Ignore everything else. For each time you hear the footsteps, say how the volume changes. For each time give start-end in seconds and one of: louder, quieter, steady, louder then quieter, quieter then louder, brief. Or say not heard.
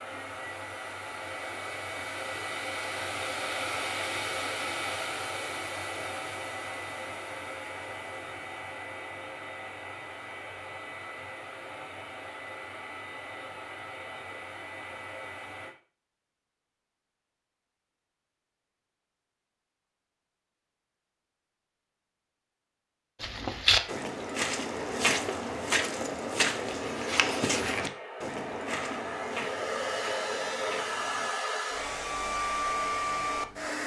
23.2-31.3 quieter.